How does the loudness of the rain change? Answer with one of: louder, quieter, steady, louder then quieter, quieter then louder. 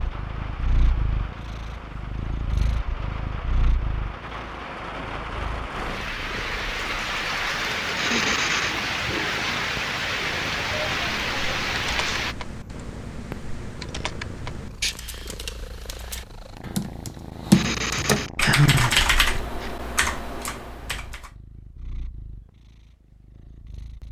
louder.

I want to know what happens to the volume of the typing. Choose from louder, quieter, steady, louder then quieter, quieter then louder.
louder then quieter.